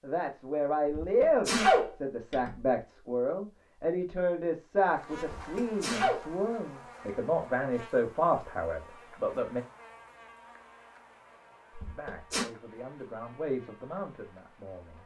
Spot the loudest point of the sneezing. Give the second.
2 s.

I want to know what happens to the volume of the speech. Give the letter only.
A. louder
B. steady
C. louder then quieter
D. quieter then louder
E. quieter
E.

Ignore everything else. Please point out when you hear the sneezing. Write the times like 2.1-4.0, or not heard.
0.8-2.6, 5.2-6.2, 11.8-12.4.